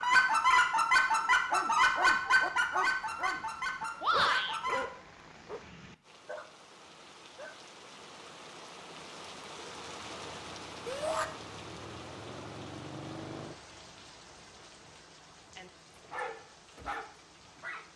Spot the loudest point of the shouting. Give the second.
4 s.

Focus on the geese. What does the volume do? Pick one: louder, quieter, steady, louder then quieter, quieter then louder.
quieter.